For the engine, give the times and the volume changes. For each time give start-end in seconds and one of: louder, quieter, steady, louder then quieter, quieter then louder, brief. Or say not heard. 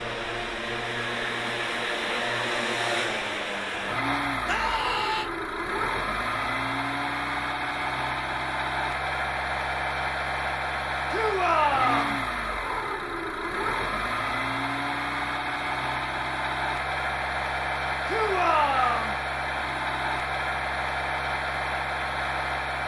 0.0-22.8 steady.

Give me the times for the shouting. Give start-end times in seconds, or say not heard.
4.5-5.2, 11.1-12.2, 18.1-19.1.